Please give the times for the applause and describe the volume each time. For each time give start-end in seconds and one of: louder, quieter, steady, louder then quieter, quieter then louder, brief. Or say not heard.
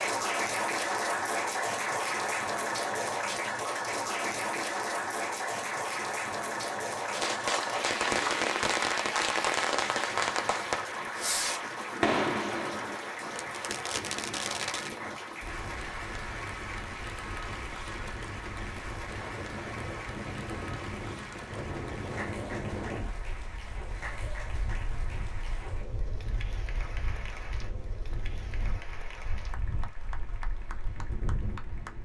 0.0-32.0 quieter.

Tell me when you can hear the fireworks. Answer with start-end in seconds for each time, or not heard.
7.0-14.9.